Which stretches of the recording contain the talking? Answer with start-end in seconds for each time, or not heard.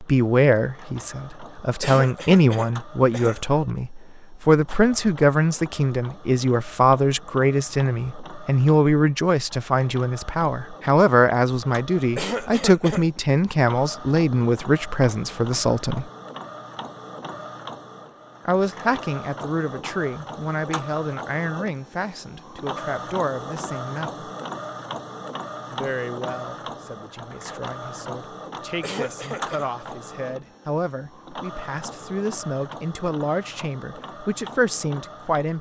0.0-16.1, 18.4-24.2, 25.7-35.5.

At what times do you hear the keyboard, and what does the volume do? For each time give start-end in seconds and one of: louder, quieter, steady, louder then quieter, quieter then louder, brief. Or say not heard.
not heard.